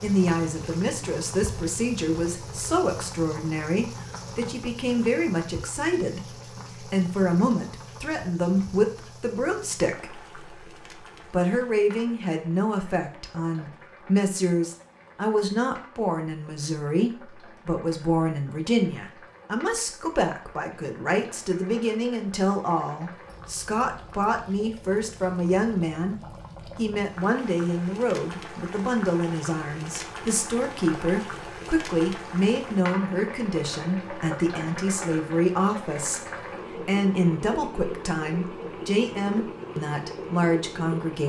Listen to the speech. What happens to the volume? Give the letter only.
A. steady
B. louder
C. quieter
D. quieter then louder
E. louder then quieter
A.